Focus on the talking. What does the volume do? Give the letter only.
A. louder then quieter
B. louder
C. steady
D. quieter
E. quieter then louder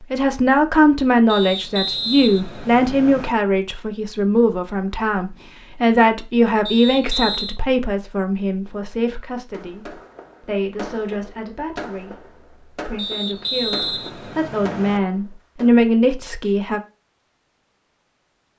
E.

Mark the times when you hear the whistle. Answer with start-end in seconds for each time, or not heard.
1.2-3.3, 6.7-7.6, 12.9-15.0.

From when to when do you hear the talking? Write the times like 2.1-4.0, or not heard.
0.1-16.8.